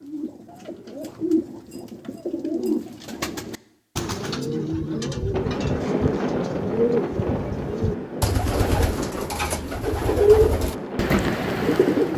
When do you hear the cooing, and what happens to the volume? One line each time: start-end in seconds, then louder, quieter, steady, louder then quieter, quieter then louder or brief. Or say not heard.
0.0-12.1 louder.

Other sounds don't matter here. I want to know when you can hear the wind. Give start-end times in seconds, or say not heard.
5.3-12.1.